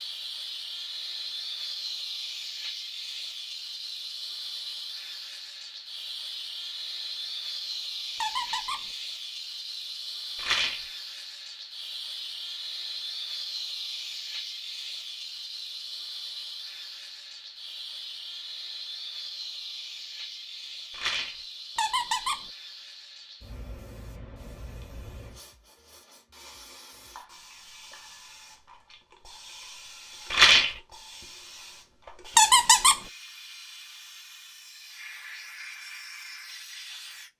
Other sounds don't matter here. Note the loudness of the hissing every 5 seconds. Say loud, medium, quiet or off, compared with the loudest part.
loud, loud, loud, loud, medium, quiet, medium, medium.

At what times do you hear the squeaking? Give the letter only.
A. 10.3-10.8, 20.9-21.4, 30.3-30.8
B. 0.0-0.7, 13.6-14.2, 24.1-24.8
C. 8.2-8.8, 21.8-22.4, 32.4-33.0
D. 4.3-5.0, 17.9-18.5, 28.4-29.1
C.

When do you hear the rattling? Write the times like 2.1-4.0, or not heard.
10.3-10.8, 20.9-21.4, 30.3-30.8.